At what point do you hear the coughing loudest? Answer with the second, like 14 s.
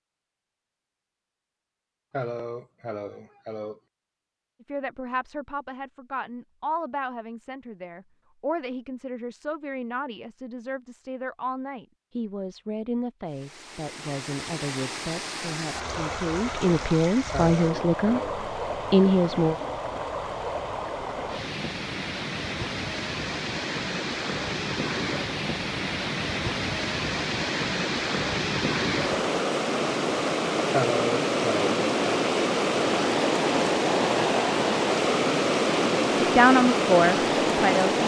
31 s.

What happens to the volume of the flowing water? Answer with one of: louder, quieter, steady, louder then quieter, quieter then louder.
louder.